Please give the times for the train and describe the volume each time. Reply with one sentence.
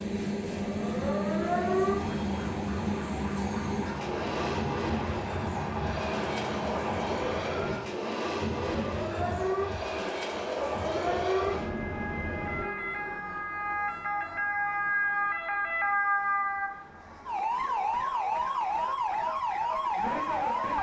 You can hear the train from 0.0 to 12.7 s, at a steady volume.